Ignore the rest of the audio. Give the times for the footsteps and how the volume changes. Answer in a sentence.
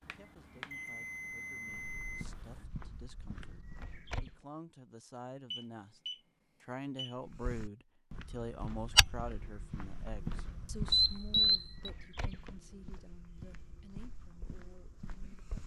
The footsteps can be heard briefly from 1.7 to 4.3 s; and from 7.2 to 15.6 s, getting quieter.